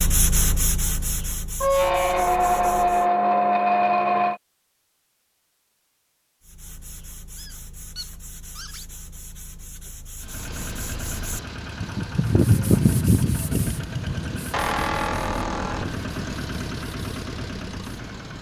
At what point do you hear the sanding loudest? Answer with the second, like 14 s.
13 s.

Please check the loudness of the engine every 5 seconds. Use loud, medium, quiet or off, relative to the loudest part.
off, off, loud, loud.